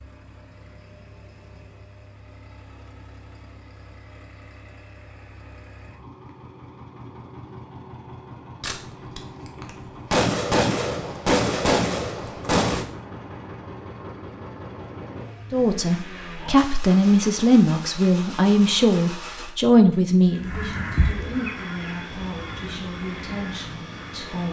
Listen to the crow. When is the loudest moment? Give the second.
21 s.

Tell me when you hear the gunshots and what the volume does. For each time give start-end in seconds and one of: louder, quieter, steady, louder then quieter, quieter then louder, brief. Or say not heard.
8.6-12.8 louder then quieter.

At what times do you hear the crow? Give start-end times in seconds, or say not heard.
20.4-24.4.